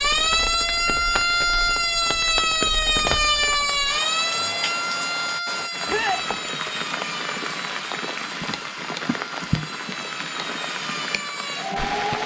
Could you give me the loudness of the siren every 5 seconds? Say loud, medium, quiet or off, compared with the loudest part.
loud, medium, medium.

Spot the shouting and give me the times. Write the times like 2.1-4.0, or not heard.
5.8-6.2.